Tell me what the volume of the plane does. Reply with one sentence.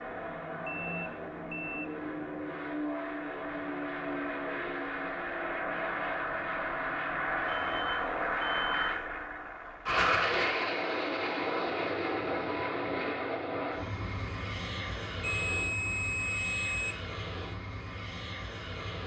The loudness of the plane goes up, then down.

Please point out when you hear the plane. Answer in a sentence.
You can hear the plane from 0.0 to 19.0 s.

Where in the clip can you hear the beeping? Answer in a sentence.
The beeping can be heard from 0.7 to 1.8 s, from 7.5 to 9.1 s and from 15.2 to 16.9 s.